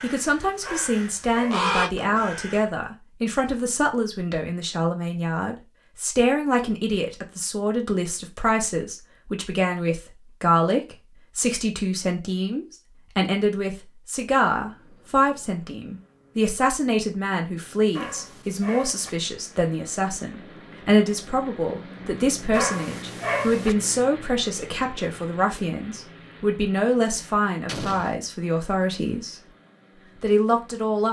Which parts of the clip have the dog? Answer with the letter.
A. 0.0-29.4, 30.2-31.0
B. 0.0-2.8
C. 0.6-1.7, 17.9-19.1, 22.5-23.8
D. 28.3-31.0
C.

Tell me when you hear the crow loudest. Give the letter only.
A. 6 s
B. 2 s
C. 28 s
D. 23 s
B.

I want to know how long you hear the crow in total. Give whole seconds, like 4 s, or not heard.
3 s.